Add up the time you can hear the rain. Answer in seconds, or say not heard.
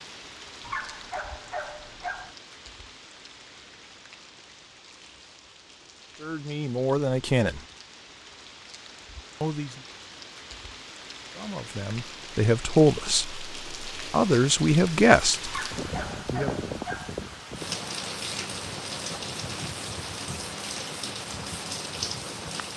23 s.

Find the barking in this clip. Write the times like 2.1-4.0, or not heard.
0.6-2.4, 15.4-17.1.